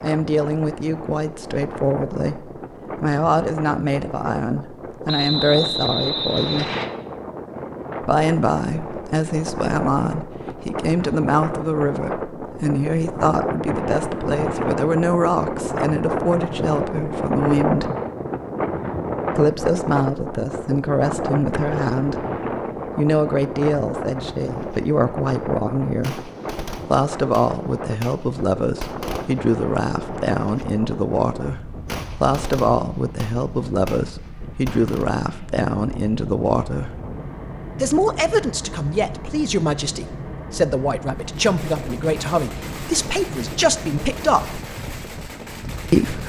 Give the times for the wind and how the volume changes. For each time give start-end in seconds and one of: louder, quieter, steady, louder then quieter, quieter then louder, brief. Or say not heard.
0.0-46.2 louder then quieter.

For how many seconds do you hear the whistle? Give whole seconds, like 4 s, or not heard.
2 s.